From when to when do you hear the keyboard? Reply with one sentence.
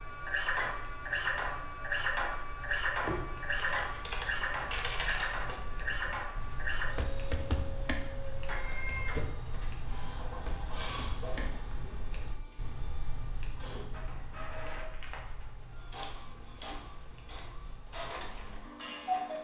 The keyboard can be heard from 3.0 to 11.6 s.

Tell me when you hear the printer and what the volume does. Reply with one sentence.
The printer can be heard from 0.0 to 19.3 s, getting quieter.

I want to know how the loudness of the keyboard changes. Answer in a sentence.
The loudness of the keyboard goes down.